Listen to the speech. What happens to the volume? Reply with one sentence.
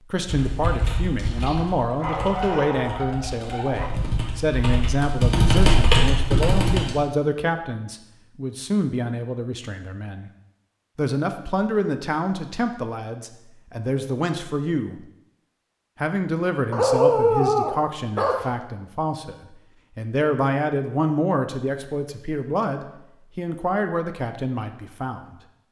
The volume of the speech stays about the same.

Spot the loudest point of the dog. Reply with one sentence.
The loudest moment of the dog is at 17 seconds.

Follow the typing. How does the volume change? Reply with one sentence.
The loudness of the typing goes down, then up.